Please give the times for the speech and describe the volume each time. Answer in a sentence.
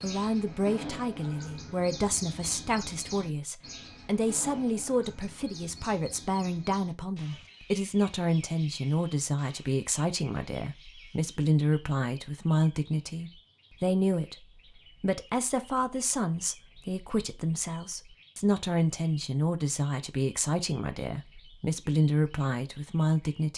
You can hear the speech from 0.0 to 23.5 s, at a steady volume.